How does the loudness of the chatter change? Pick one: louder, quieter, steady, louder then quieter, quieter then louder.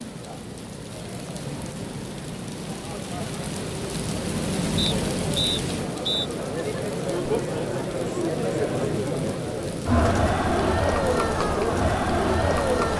louder.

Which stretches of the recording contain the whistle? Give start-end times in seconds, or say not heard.
4.8-6.3.